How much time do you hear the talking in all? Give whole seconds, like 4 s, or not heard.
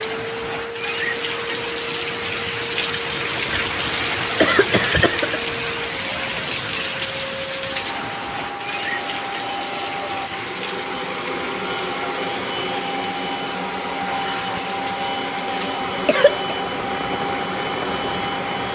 not heard.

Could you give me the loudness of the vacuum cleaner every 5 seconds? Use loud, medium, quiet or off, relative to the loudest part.
medium, medium, loud, loud.